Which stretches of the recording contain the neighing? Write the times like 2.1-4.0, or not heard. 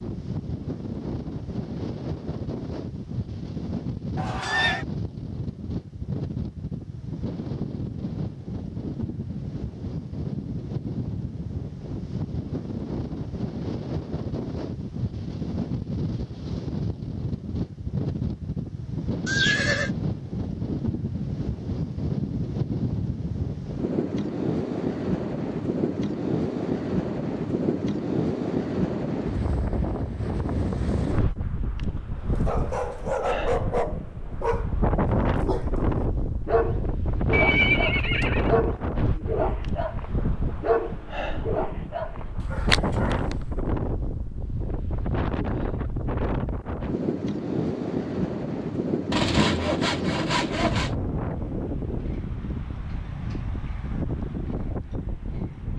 4.2-4.8, 19.2-19.9, 37.3-38.5.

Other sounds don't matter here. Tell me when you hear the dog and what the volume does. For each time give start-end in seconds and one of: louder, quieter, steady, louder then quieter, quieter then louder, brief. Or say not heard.
32.5-43.5 steady.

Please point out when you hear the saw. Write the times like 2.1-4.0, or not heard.
49.1-50.9.